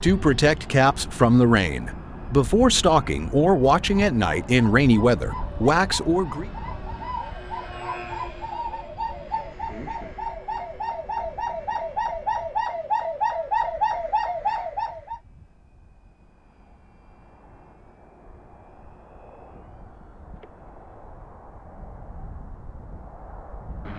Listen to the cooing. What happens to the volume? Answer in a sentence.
The loudness of the cooing goes up.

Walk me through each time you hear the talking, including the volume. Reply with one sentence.
The talking can be heard from 0.0 to 6.5 s, at a steady volume.